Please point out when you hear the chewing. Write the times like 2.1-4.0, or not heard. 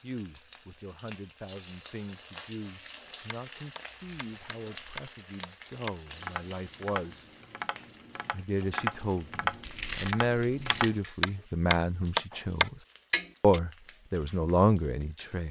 9.5-10.9.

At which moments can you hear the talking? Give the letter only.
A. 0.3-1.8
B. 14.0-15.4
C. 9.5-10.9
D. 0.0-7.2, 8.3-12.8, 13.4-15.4
D.